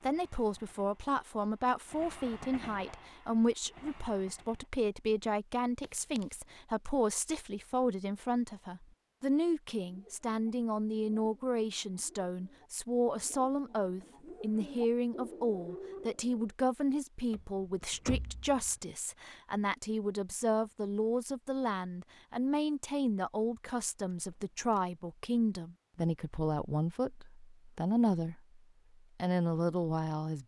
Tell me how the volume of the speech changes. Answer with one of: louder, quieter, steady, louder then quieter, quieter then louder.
steady.